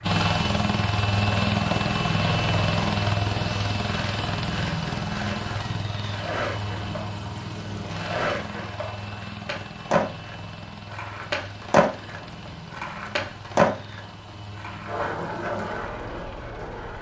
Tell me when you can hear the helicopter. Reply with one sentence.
You can hear the helicopter from 0.0 to 16.9 s.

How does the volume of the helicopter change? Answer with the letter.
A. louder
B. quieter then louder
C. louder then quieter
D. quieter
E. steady
D.